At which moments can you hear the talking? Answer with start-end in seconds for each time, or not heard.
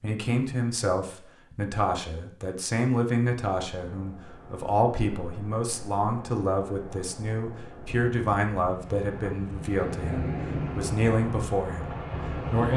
0.0-12.7.